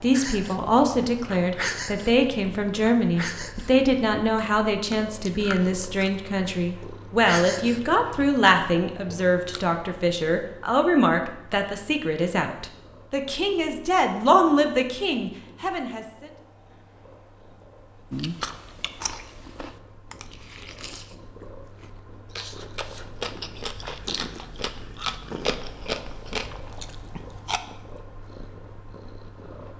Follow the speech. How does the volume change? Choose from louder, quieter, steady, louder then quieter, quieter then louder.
steady.